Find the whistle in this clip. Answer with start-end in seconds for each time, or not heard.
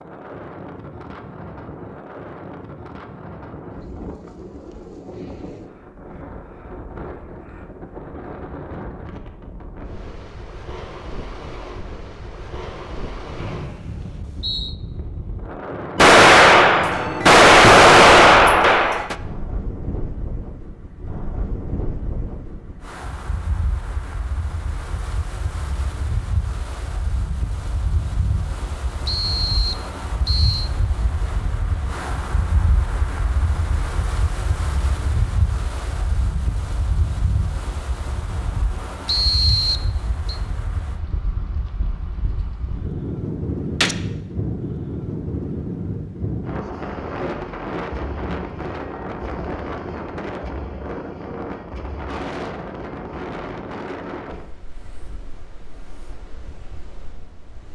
13.4-14.8, 29.1-30.7, 39.0-40.4.